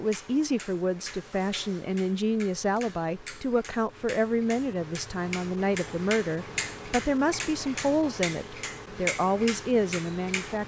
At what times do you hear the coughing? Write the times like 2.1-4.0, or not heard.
not heard.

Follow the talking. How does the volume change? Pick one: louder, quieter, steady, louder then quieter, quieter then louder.
steady.